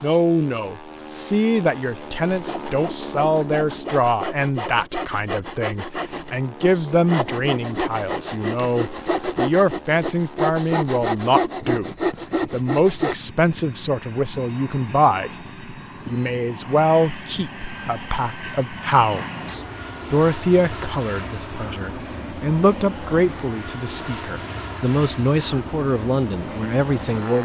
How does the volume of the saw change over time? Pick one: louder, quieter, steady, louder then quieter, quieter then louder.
louder.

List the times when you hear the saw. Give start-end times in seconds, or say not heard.
2.2-13.2.